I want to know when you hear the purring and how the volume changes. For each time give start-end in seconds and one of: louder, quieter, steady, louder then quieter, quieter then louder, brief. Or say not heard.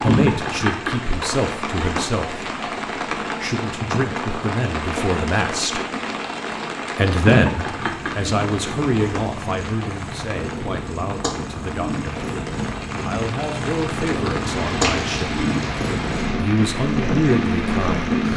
7.8-18.3 louder.